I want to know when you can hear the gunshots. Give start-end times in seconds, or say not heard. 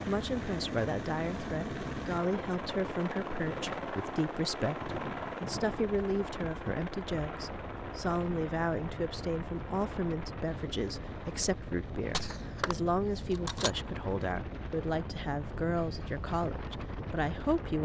12.0-13.7.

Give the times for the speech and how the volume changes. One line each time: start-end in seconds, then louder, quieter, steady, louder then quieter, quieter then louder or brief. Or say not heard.
0.1-17.7 steady.